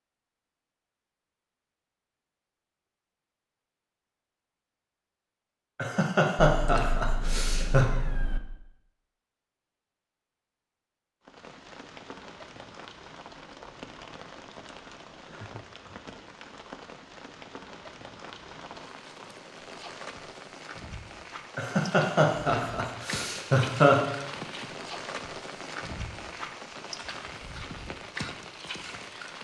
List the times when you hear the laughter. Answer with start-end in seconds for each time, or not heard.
5.8-7.8, 21.6-24.0.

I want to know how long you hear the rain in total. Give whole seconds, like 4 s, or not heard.
18 s.